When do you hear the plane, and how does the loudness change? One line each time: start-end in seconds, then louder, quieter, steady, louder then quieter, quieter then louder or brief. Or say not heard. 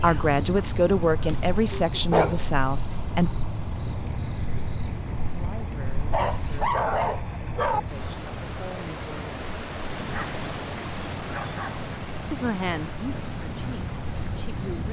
not heard.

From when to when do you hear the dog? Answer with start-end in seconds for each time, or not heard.
1.2-2.5, 5.9-7.8, 9.9-11.9.